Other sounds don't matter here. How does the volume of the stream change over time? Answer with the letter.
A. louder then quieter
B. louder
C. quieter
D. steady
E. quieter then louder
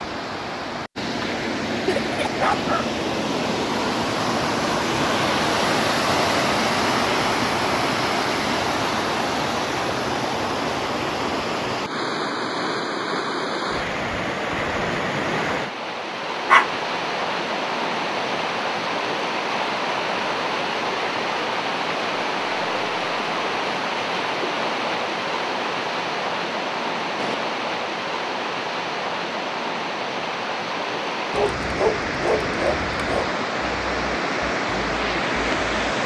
D.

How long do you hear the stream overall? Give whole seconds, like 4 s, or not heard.
36 s.